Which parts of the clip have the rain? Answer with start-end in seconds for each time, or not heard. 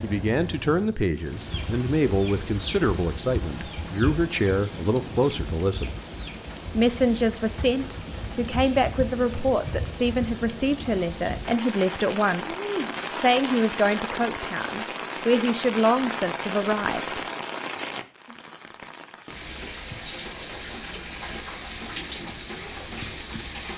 0.0-23.7.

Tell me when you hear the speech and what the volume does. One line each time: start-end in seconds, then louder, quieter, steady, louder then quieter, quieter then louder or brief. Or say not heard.
0.0-6.0 steady
6.7-17.2 steady.